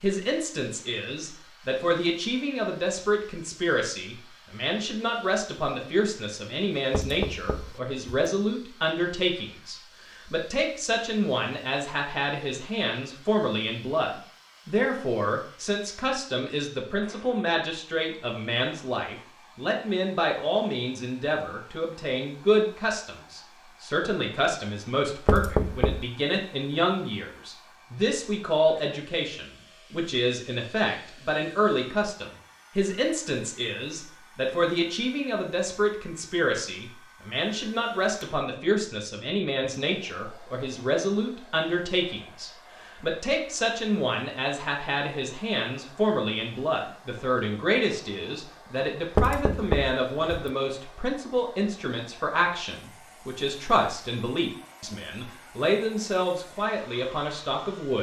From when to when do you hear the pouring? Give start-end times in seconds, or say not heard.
not heard.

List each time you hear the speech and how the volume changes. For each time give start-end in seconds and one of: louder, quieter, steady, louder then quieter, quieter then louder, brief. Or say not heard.
0.0-57.9 steady.